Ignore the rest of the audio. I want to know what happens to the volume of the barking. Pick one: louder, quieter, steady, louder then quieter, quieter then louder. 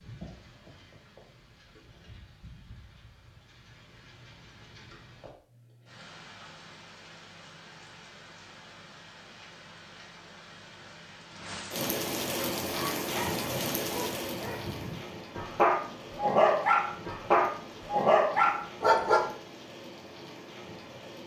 louder.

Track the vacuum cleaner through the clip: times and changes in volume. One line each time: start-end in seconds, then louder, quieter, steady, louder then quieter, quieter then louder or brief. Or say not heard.
not heard.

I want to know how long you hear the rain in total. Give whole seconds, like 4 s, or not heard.
21 s.